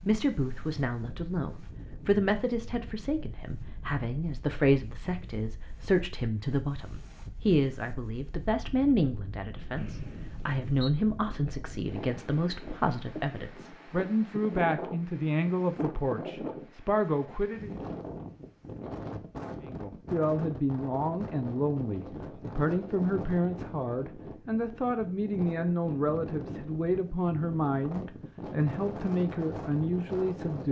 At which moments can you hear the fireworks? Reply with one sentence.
You can't hear the fireworks here.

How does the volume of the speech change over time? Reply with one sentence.
The loudness of the speech stays about the same.